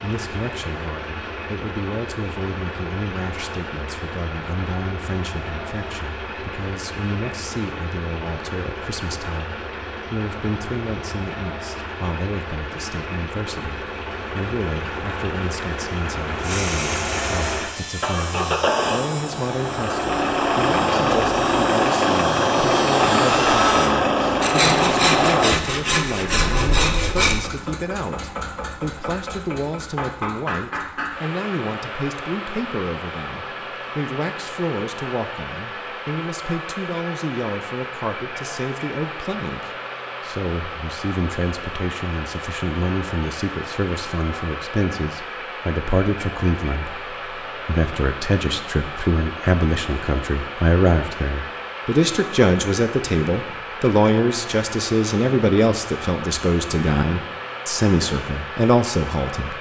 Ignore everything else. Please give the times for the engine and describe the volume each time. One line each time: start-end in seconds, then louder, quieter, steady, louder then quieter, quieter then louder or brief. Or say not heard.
0.0-59.5 louder then quieter.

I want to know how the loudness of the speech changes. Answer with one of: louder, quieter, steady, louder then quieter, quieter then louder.
louder.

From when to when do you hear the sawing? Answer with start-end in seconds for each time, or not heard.
16.4-27.4.